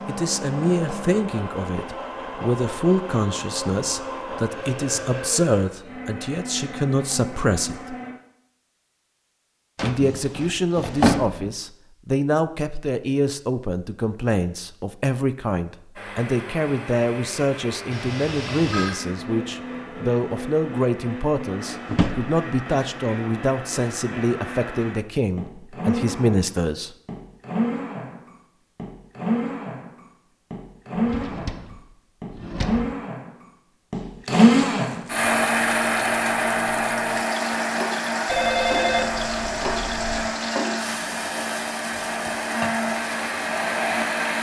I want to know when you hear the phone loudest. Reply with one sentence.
The volume of the phone peaks at 39 seconds.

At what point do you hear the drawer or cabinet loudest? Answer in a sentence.
The loudest moment of the drawer or cabinet is at 11 seconds.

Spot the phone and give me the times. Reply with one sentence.
The phone can be heard from 17.9 to 19.0 s and from 38.2 to 40.3 s.